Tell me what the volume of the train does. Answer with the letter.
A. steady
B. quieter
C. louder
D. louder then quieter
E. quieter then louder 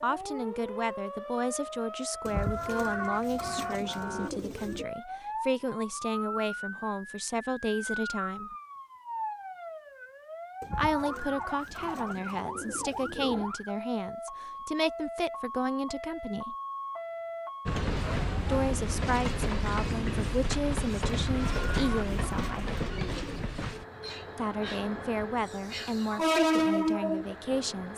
E.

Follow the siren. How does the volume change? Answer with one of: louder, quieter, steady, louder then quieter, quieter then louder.
steady.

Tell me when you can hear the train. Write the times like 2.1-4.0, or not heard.
17.6-27.9.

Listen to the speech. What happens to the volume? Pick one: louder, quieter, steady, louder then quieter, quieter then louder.
steady.